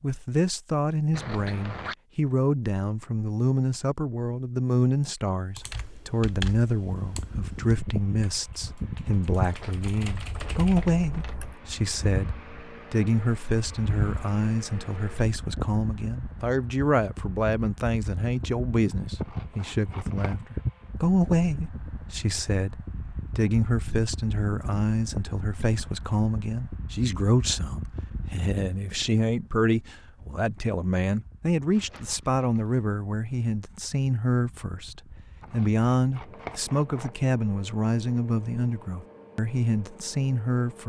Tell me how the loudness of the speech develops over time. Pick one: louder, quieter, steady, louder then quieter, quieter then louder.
steady.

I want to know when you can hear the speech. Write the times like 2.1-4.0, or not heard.
0.0-40.8.